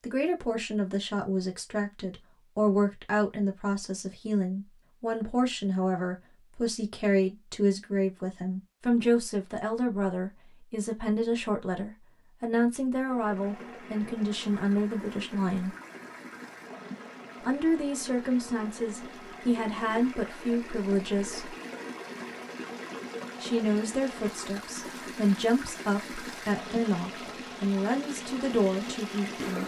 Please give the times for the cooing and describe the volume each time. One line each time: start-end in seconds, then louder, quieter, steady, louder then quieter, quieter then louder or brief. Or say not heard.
not heard.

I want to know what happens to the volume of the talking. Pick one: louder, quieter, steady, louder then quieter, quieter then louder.
steady.